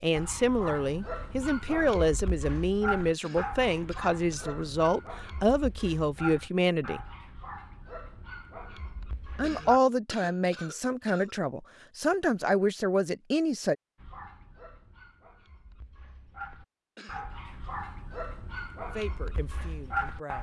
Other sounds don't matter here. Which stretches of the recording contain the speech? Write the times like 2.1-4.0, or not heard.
0.0-7.0, 9.3-13.8, 18.9-20.3.